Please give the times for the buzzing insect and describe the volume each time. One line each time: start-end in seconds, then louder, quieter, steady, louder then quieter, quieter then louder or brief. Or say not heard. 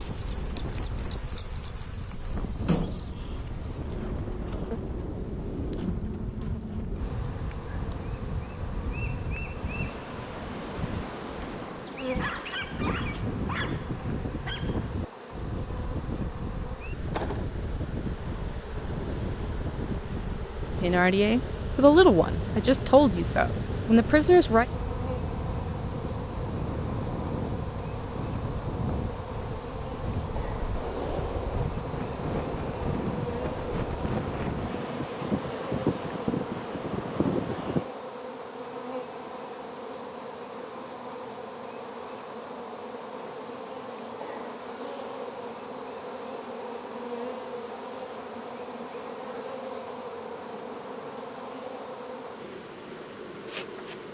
0.0-54.1 steady.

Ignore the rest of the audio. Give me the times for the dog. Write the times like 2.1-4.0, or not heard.
12.2-14.8.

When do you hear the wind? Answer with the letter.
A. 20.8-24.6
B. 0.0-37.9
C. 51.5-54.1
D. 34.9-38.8
B.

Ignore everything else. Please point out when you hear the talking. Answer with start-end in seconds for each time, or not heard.
20.8-24.6.